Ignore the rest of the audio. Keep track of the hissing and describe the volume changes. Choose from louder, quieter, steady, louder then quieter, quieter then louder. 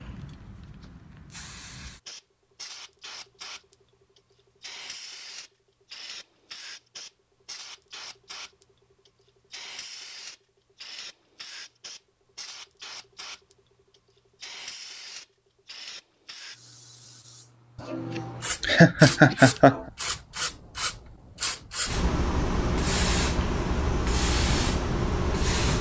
louder.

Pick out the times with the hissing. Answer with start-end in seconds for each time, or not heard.
0.0-25.7.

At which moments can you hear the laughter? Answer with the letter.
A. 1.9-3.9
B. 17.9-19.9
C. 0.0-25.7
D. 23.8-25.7
B.